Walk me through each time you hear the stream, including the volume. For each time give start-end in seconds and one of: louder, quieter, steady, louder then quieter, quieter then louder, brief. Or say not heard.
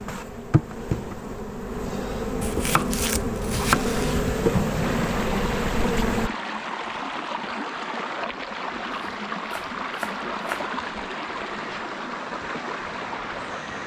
4.6-13.8 steady.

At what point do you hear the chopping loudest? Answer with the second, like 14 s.
4 s.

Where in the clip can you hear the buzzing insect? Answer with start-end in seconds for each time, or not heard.
0.0-6.3.